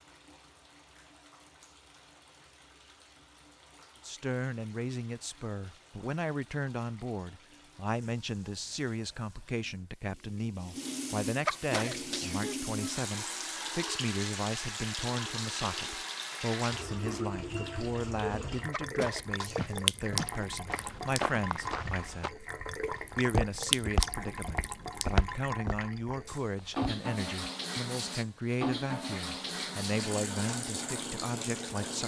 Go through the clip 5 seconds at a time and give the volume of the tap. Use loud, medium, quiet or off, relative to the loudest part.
quiet, quiet, loud, loud, loud, loud, loud.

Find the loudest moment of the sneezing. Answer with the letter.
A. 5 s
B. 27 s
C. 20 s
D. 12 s
D.